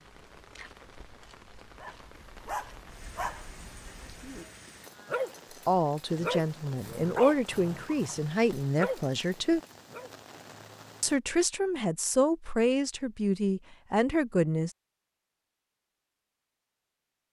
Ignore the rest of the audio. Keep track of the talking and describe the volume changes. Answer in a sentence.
The volume of the talking stays about the same.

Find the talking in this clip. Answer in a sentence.
You can hear the talking from 5.7 to 9.6 s and from 11.0 to 14.7 s.